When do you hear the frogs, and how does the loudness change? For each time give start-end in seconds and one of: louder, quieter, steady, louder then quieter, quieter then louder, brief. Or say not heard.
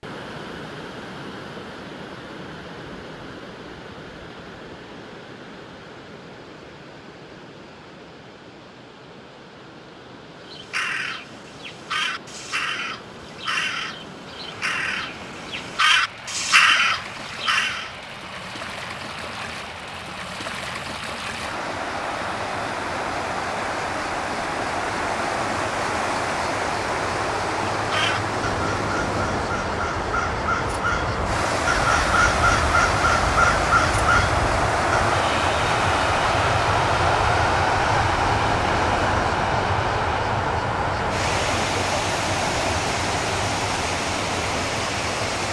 not heard.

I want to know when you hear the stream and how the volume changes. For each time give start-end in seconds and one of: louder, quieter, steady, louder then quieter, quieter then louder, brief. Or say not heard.
0.0-45.4 louder.